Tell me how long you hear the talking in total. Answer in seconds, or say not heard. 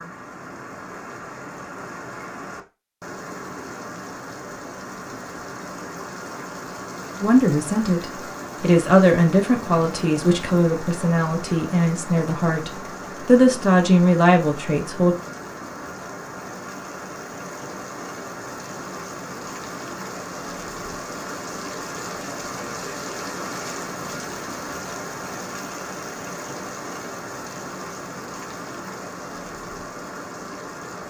8 s.